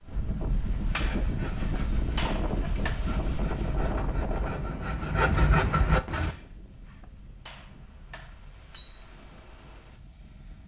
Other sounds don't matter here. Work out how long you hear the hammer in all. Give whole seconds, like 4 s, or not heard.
5 s.